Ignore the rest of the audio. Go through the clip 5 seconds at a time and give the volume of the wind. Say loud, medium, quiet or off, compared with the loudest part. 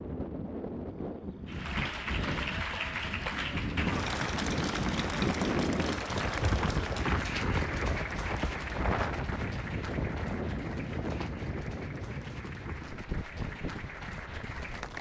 loud, loud, medium.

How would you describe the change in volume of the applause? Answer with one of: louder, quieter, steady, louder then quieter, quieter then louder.
quieter.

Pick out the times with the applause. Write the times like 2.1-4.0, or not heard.
1.4-14.9.